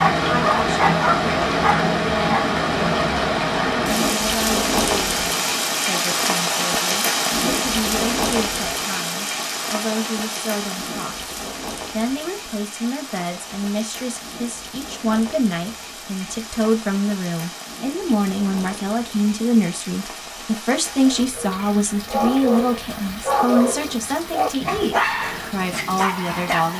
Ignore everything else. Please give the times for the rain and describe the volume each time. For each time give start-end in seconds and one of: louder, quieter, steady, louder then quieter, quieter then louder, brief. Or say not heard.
0.0-26.7 quieter.